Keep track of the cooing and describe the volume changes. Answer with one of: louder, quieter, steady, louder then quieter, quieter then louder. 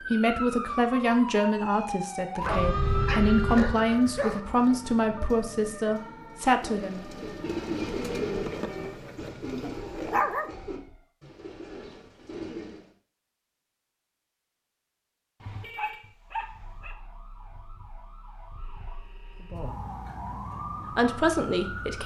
quieter.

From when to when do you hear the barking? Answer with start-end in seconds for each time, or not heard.
2.4-4.4, 8.4-10.5, 15.8-16.9.